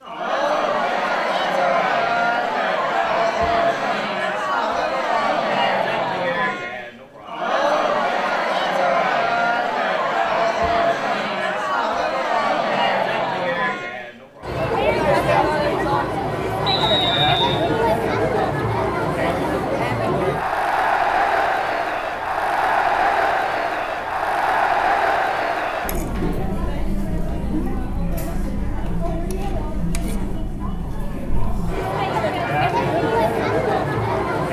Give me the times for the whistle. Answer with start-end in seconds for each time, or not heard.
16.6-17.6.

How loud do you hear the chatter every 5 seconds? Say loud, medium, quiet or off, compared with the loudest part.
loud, loud, loud, loud, loud, medium, loud.